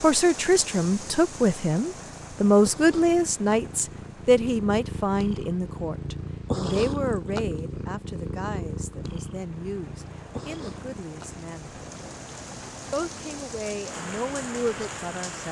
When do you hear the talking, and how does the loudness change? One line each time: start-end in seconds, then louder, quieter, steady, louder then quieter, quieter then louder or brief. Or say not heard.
0.0-11.8 quieter
12.9-15.4 brief.